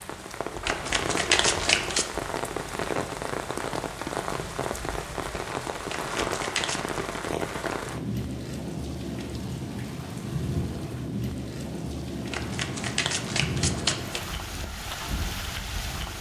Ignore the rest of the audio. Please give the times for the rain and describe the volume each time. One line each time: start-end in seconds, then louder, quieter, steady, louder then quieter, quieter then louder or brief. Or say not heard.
0.0-16.1 steady.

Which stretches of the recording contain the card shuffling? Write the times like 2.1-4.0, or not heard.
0.7-2.1, 5.8-6.8, 12.3-14.2.